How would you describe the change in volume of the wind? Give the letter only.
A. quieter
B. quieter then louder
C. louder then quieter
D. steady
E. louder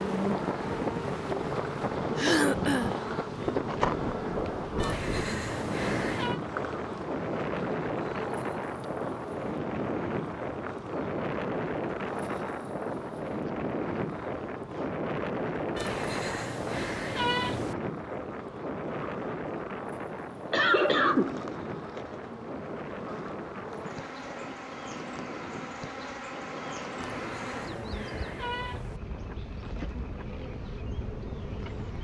A.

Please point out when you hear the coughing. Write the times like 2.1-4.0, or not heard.
2.1-3.0, 20.5-21.4.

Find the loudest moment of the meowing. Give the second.
17 s.